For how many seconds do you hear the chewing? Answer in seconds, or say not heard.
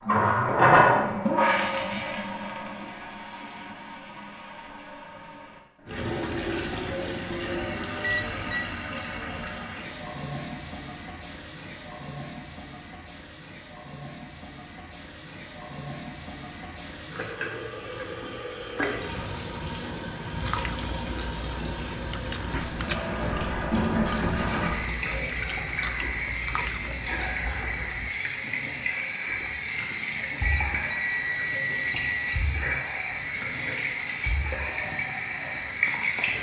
8 s.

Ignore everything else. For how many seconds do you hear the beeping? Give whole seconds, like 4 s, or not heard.
3 s.